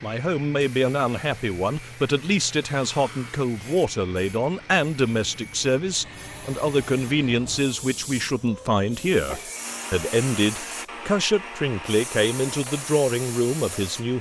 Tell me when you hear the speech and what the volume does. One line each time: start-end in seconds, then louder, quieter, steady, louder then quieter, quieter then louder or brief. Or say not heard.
0.0-14.1 steady.